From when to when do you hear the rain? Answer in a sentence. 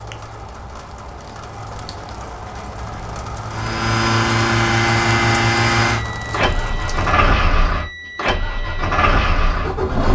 You can hear the rain from 0.0 to 7.2 s.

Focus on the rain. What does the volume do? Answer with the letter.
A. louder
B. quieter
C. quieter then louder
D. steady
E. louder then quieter
A.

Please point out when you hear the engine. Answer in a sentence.
The engine can be heard from 3.5 to 10.1 s.